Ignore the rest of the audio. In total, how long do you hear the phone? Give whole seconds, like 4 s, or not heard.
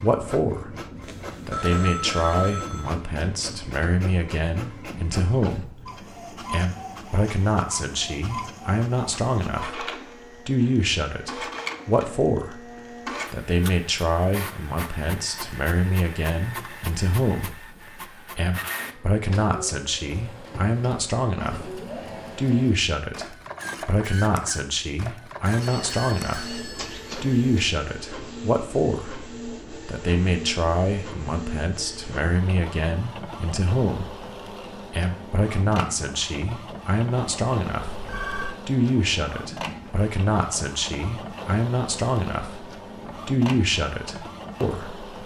5 s.